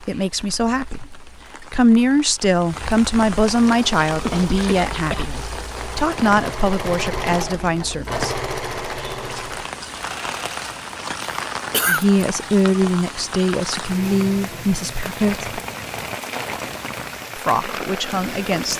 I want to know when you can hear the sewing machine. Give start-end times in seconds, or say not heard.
3.6-10.8.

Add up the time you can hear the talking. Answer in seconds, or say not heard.
13 s.